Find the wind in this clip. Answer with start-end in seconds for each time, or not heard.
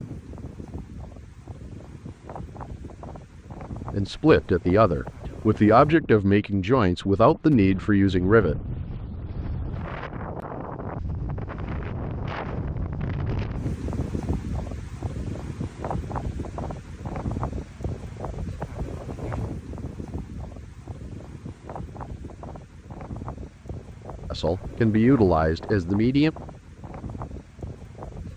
0.0-28.3.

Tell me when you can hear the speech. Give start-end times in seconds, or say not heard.
3.9-8.6, 24.3-26.4.